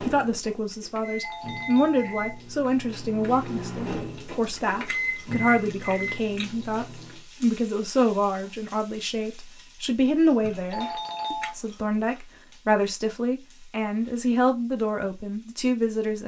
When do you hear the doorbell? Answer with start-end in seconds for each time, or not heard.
1.2-2.1, 10.7-11.6.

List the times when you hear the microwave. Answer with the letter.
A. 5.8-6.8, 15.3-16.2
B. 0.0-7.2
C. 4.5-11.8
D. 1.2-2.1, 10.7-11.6
B.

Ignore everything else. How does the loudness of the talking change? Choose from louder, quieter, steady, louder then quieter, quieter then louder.
steady.